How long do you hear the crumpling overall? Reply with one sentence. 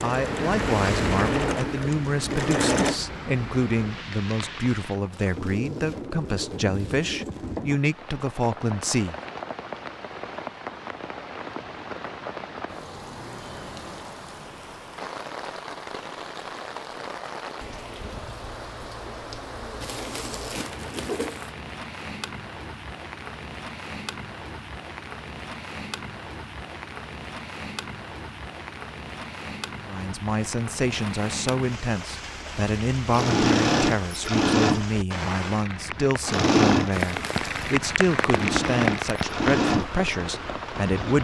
The crumpling can be heard for 5 seconds in total.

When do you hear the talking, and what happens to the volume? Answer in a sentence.
You can hear the talking from 0.0 to 9.2 s, at a steady volume; and from 29.9 to 41.1 s, at a steady volume.